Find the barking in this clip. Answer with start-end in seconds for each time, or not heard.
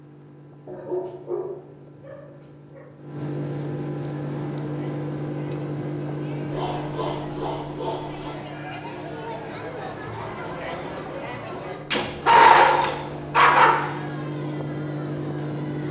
0.7-2.9, 6.5-8.3, 11.9-13.9.